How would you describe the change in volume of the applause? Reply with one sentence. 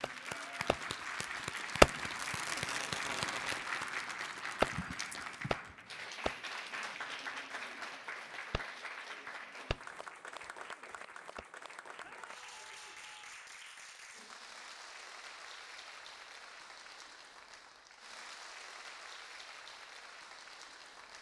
The volume of the applause goes down.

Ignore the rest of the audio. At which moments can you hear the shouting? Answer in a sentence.
You can hear the shouting from 12.0 to 13.4 s.